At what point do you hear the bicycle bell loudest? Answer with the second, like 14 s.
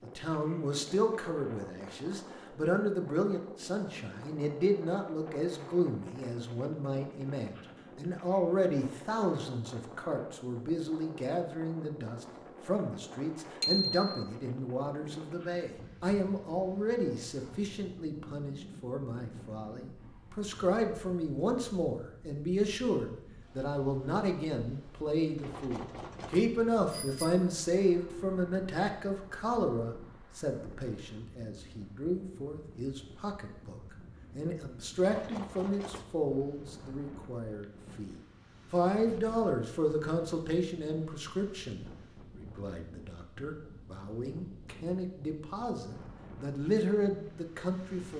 14 s.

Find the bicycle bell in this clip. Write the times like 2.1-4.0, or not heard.
13.6-14.1, 25.4-27.4, 35.0-36.1.